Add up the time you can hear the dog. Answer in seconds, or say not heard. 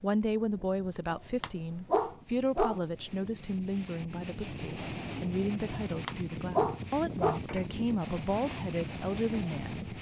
4 s.